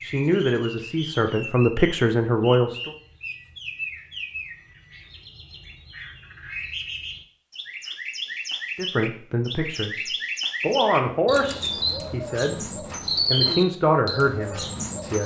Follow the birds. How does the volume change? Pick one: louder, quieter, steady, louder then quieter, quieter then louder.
louder.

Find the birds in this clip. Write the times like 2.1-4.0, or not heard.
0.0-15.2.